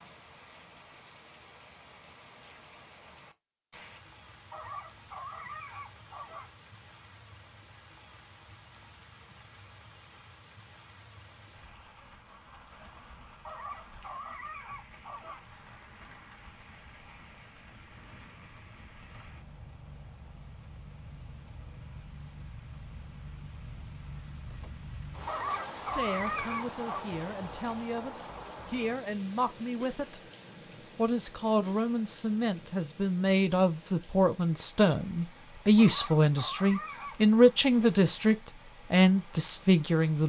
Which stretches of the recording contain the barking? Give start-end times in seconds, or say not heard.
4.5-6.5, 13.4-15.4, 25.2-27.1, 35.8-37.3.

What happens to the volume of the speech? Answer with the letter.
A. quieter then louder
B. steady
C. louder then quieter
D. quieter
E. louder
E.